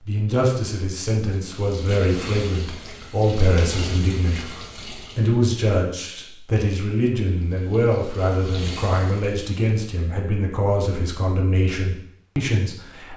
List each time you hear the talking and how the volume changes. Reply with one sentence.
The talking can be heard from 0.1 to 13.1 s, at a steady volume.